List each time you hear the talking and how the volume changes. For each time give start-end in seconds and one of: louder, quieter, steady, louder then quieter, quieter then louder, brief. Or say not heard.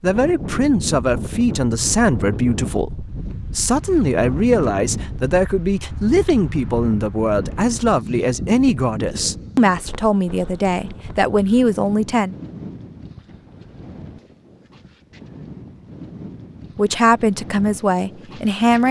0.0-12.3 steady
16.8-18.8 brief.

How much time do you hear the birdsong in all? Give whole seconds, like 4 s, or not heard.
not heard.